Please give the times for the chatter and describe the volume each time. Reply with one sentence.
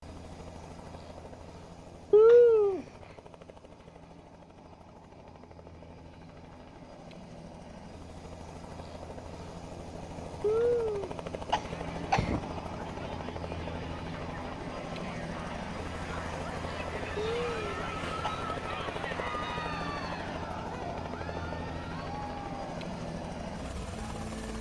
The chatter can be heard from 11.7 to 24.5 s, getting louder then quieter.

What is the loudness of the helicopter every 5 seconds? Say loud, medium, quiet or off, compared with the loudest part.
medium, medium, loud, loud, loud.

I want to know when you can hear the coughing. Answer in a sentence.
The coughing can be heard from 2.1 to 2.9 s, from 10.4 to 12.4 s and from 17.1 to 18.4 s.